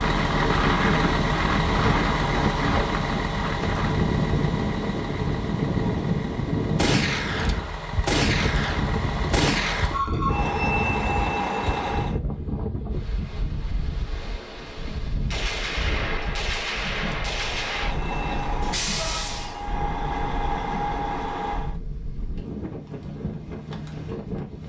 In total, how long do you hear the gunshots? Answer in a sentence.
You can hear the gunshots for 6 seconds altogether.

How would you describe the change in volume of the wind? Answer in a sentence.
The volume of the wind goes down.